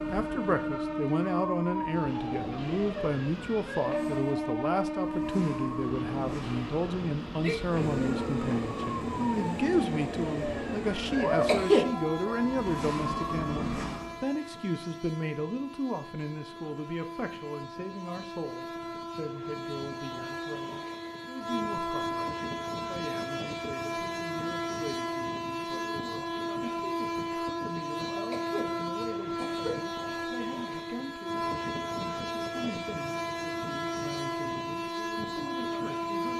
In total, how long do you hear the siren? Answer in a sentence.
The siren can be heard for 14 seconds in total.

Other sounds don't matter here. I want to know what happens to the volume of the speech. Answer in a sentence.
The loudness of the speech goes down.